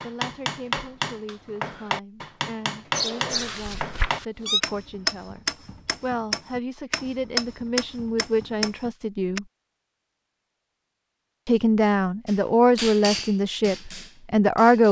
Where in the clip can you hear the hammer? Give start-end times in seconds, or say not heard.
0.0-9.4, 12.2-14.8.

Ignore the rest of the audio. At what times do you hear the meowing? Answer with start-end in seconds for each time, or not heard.
2.9-4.6.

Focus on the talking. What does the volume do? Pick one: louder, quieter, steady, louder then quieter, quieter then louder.
louder.